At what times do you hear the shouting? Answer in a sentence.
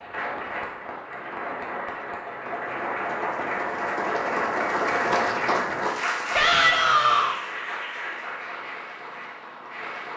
You can hear the shouting from 6.3 to 7.4 s.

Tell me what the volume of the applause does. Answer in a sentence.
The volume of the applause goes up, then down.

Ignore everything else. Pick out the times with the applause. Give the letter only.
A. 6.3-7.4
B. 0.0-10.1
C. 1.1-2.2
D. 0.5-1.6
B.